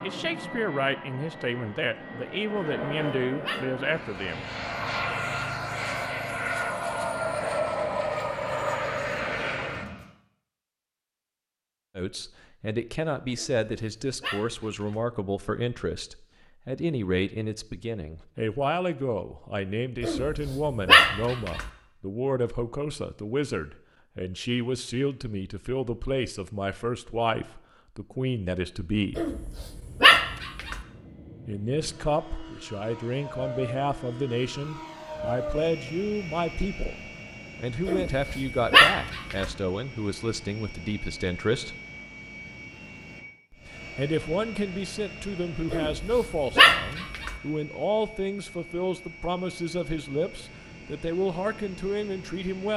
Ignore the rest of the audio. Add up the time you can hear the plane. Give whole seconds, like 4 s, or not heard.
32 s.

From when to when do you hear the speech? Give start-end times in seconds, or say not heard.
0.0-4.4, 11.9-29.2, 31.4-41.8, 43.5-52.7.